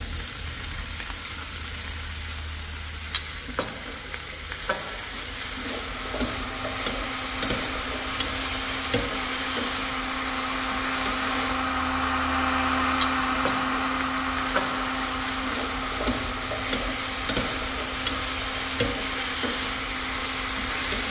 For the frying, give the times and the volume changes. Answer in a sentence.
The frying can be heard from 0.0 to 21.0 s, getting louder.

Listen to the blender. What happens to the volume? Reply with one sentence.
The loudness of the blender goes up, then down.